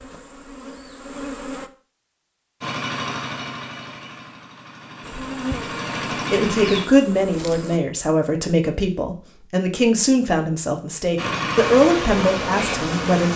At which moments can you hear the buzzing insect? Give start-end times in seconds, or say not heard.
0.0-1.7, 5.0-7.8, 11.6-13.3.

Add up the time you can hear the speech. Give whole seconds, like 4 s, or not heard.
7 s.